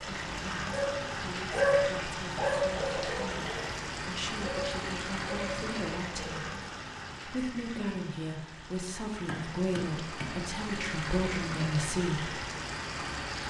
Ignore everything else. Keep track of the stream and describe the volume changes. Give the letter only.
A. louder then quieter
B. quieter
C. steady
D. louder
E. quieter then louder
E.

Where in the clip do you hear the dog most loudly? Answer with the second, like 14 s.
2 s.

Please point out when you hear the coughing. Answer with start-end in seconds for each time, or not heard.
not heard.